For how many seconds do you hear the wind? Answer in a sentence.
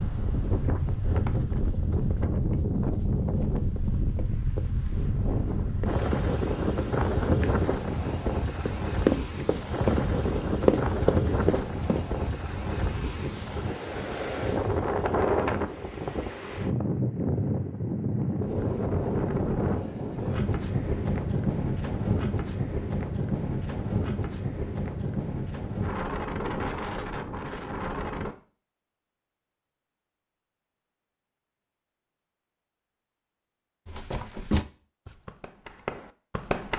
The wind can be heard for 28 seconds in total.